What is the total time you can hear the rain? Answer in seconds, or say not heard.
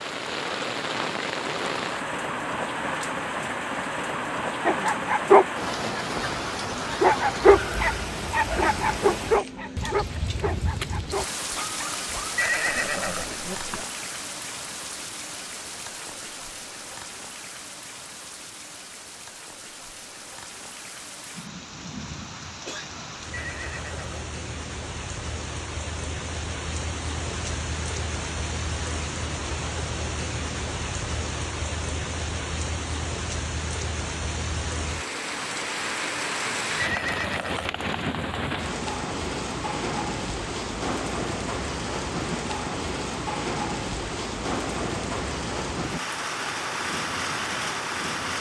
48 s.